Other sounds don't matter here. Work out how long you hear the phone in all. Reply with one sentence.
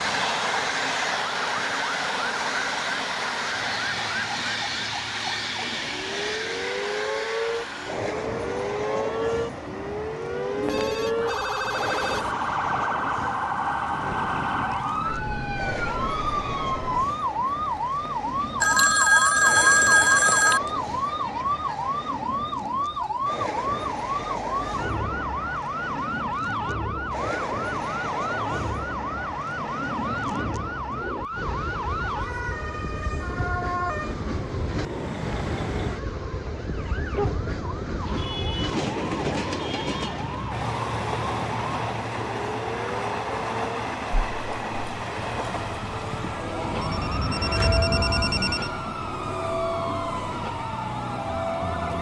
You can hear the phone for 6 seconds altogether.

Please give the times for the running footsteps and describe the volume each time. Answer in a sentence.
You can't hear the running footsteps here.